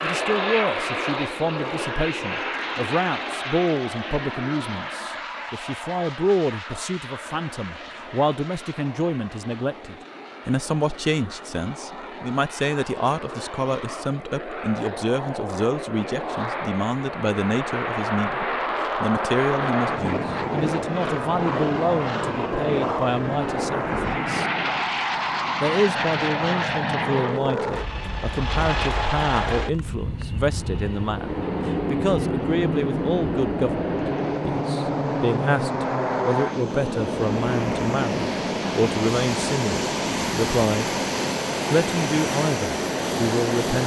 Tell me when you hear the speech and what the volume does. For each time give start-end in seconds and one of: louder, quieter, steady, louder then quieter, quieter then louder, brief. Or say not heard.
0.0-24.4 steady
25.6-40.9 steady
41.7-43.8 brief.